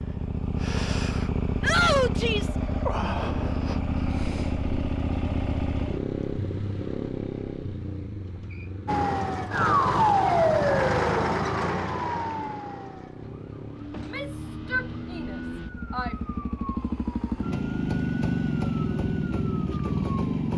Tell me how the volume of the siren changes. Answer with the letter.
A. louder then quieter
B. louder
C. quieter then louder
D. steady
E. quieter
E.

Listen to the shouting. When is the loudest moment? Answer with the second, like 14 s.
2 s.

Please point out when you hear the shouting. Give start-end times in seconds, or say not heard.
1.6-2.5, 13.9-16.1.